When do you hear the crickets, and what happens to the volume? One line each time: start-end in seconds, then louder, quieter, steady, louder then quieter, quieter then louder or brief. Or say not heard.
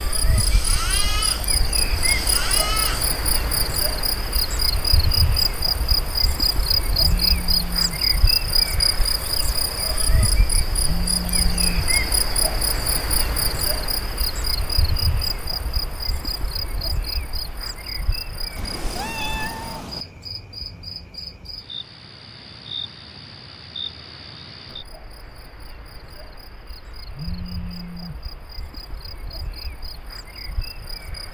0.0-31.3 quieter.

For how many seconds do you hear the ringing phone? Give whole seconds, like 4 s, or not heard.
3 s.